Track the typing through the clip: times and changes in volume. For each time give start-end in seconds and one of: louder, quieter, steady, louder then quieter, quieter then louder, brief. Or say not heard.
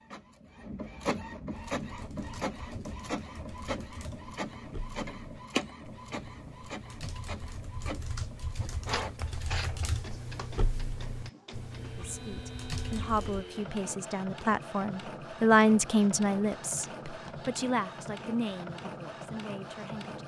1.8-13.4 louder.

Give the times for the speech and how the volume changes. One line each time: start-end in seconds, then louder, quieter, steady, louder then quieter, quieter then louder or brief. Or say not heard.
11.9-20.2 louder then quieter.